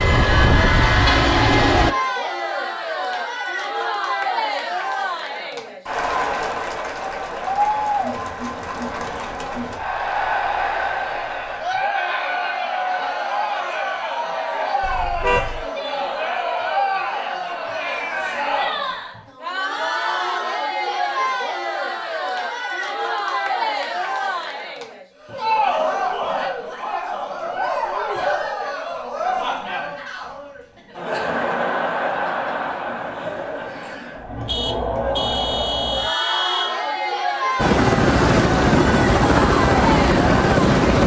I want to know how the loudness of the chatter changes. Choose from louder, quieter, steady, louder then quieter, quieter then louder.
steady.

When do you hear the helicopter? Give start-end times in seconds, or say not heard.
0.0-1.9, 37.5-41.0.